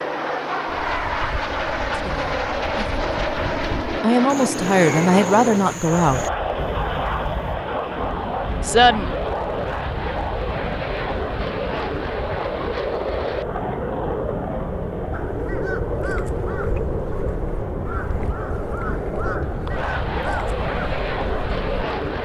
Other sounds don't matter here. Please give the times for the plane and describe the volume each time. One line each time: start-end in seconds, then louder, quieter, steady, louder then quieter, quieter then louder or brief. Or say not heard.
0.0-22.1 steady.